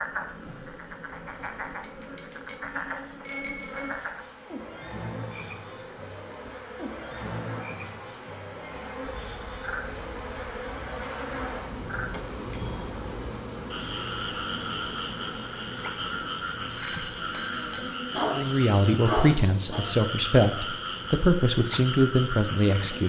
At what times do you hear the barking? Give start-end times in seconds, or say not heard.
18.1-19.8.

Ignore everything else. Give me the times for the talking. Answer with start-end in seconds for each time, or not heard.
18.3-23.0.